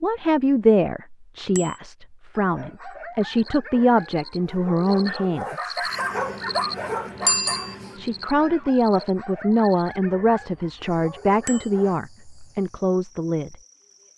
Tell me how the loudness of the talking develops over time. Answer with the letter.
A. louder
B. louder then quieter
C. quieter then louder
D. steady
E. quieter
D.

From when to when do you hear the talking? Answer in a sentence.
You can hear the talking from 0.0 to 5.8 s and from 8.0 to 13.6 s.